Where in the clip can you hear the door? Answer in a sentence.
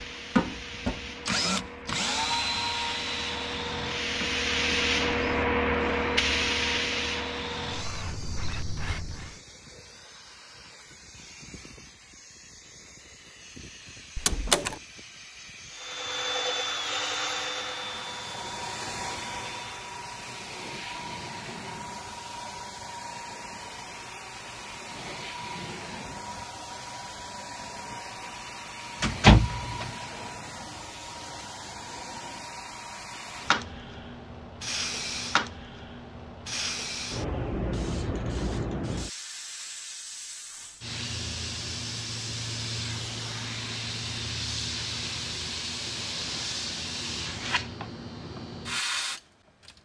The door can be heard from 14.2 to 14.8 s and from 29.0 to 29.9 s.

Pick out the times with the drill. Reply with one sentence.
You can hear the drill from 0.0 to 9.4 s and from 15.7 to 20.0 s.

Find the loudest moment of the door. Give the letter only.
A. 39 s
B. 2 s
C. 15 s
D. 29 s
D.